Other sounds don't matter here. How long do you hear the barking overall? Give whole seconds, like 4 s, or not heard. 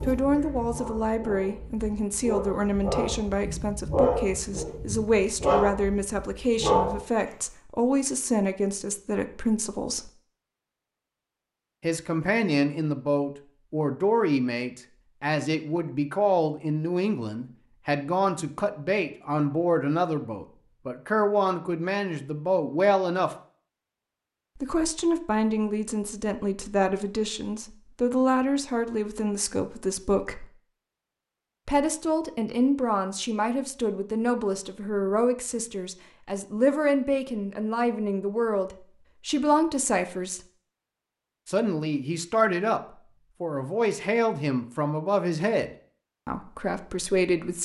7 s.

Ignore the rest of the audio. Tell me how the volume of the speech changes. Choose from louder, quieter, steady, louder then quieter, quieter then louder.
steady.